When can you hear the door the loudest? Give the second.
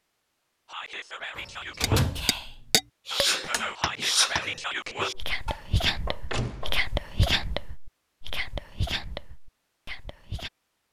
2 s.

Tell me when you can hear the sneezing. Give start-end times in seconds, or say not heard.
3.0-5.2.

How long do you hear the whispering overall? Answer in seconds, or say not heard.
10 s.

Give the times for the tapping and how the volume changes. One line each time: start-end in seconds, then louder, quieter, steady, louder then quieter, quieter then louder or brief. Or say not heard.
1.8-7.3 quieter.